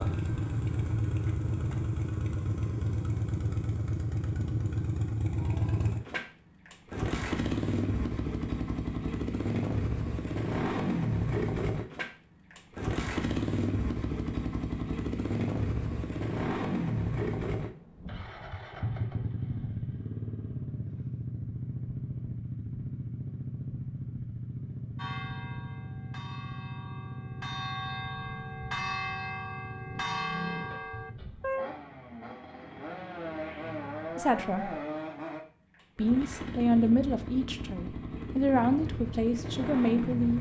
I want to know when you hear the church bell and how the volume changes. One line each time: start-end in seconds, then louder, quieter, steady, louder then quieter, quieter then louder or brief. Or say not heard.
24.9-31.7 louder.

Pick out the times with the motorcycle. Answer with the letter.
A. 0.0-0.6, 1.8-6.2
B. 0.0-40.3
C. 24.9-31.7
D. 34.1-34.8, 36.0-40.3
B.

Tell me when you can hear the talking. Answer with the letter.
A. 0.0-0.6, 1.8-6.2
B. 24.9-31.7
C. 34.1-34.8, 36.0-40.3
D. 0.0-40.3
C.